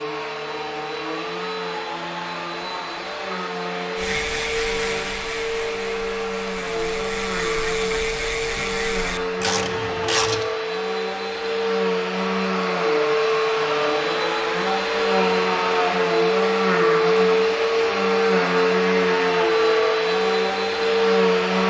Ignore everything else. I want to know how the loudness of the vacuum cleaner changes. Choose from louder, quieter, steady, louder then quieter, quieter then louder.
louder.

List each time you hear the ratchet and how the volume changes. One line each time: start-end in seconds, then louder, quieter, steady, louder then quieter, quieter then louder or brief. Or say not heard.
4.0-10.4 quieter then louder.